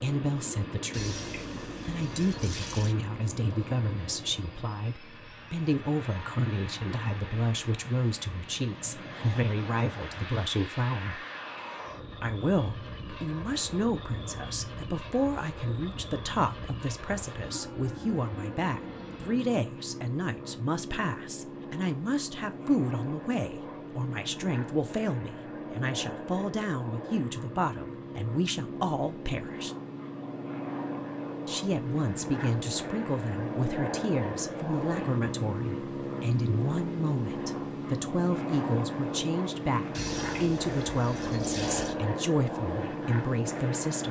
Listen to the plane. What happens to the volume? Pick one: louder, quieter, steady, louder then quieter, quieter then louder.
louder.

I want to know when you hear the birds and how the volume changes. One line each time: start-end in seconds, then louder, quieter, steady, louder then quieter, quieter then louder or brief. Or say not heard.
not heard.